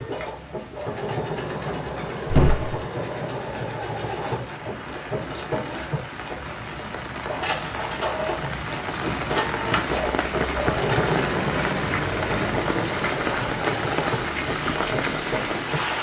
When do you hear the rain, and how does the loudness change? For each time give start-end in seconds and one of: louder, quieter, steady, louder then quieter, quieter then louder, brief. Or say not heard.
0.0-15.9 louder.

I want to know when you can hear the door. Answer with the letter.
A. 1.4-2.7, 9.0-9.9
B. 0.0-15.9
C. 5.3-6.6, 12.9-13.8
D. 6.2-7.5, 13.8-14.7
A.